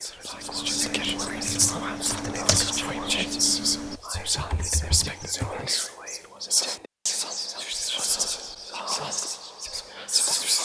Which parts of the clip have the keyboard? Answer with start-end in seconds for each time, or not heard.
0.3-5.7.